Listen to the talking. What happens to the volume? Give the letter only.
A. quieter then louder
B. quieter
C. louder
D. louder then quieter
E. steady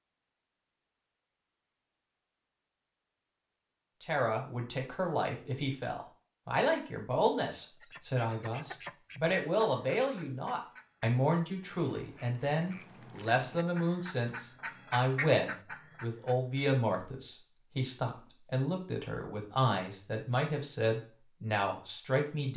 E.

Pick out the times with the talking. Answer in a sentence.
The talking can be heard from 4.0 to 22.5 s.